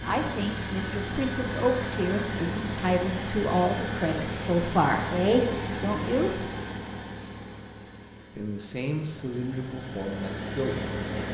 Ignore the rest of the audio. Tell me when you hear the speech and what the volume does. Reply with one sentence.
You can hear the speech from 0.0 to 6.4 s, getting louder; and briefly from 8.3 to 11.0 s.